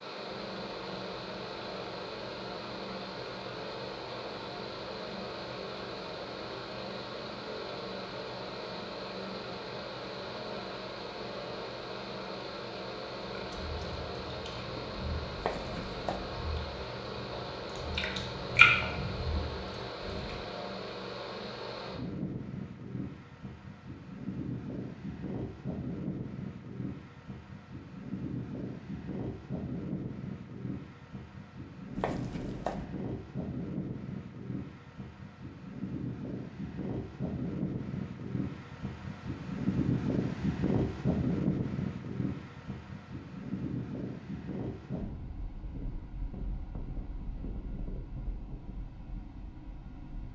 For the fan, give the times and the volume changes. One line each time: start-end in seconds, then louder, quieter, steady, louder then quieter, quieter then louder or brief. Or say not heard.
0.0-50.3 steady.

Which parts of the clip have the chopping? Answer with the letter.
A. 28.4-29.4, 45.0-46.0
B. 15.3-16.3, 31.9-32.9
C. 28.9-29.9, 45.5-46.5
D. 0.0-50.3
B.